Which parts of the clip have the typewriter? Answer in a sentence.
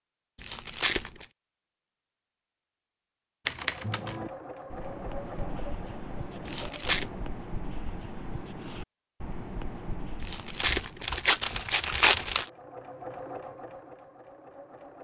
The typewriter can be heard from 3.5 to 4.3 s and from 10.6 to 12.4 s.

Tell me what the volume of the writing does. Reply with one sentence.
The volume of the writing stays about the same.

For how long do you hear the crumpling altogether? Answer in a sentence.
The crumpling can be heard for 4 seconds in total.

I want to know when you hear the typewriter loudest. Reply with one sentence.
The volume of the typewriter peaks at 4 seconds.